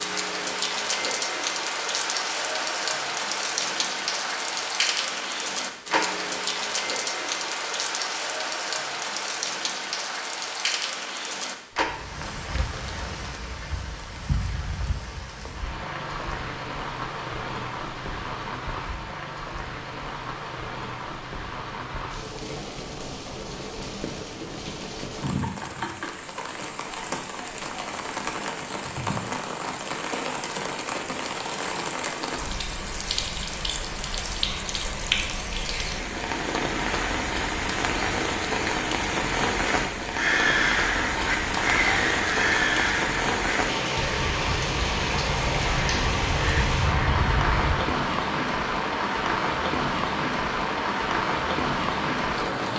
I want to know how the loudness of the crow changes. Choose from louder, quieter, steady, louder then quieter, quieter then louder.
quieter then louder.